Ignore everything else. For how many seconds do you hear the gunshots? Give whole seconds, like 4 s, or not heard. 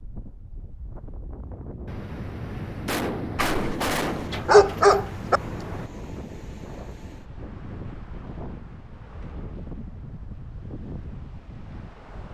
4 s.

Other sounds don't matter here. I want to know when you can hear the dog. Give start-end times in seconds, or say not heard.
3.4-5.4.